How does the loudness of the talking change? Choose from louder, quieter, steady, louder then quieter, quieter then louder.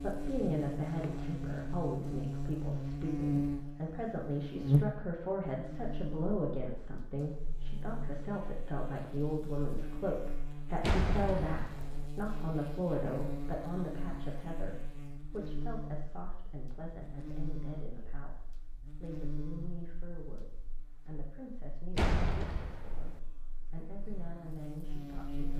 quieter.